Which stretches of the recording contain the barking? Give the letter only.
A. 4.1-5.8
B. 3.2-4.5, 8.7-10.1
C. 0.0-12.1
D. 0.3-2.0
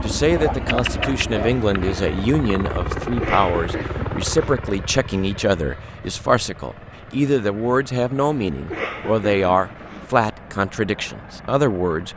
D.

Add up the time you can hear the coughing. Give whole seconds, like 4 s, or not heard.
3 s.